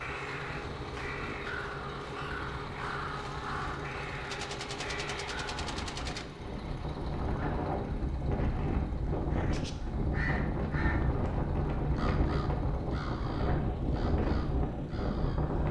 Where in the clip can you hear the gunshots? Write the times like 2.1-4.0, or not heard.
4.2-6.2.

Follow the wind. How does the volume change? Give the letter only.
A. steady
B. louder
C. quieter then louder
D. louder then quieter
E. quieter
B.